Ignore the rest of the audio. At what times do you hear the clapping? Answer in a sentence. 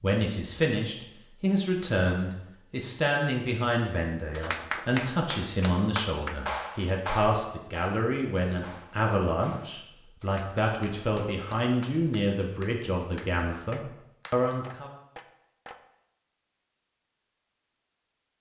The clapping can be heard from 4.3 to 15.8 s.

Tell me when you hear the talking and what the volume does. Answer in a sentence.
The talking can be heard from 0.0 to 14.9 s, at a steady volume.